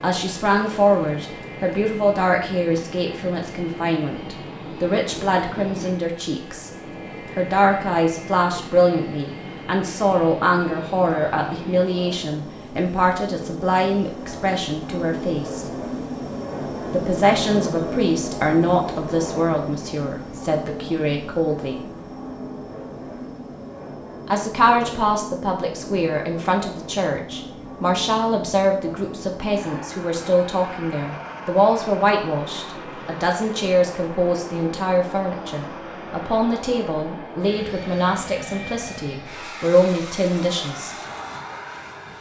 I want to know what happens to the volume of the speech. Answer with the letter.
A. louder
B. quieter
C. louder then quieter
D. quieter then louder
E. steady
E.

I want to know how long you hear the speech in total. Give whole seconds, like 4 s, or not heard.
37 s.